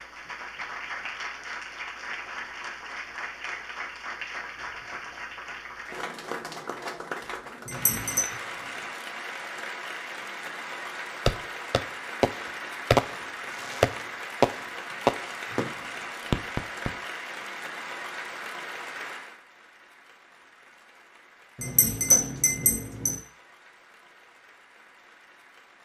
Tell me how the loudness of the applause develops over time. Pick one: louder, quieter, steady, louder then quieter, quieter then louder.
quieter.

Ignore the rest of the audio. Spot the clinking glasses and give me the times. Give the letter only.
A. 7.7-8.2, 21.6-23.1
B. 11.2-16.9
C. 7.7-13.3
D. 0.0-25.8
A.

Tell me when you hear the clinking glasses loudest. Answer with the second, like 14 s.
22 s.